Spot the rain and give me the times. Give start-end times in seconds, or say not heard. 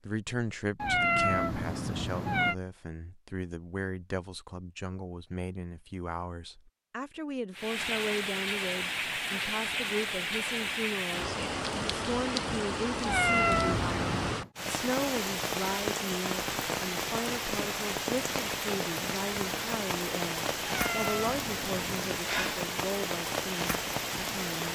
7.5-24.7.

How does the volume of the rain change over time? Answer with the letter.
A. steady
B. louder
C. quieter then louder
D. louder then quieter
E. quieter
A.